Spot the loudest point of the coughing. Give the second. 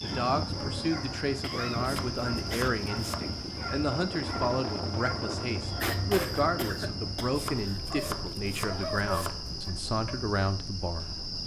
6 s.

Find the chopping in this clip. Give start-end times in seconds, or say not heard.
1.8-3.4, 7.3-9.8.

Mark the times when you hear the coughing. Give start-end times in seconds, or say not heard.
1.4-2.7, 5.8-7.8.